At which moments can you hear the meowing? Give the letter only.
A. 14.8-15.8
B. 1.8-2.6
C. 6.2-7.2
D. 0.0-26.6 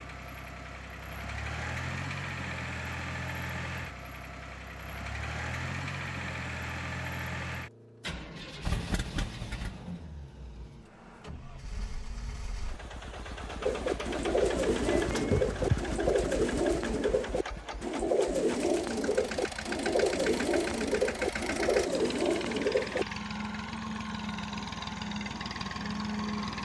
A.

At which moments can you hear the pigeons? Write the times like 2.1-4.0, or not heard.
13.6-23.1.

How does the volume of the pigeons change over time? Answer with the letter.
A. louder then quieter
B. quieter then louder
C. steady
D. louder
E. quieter
C.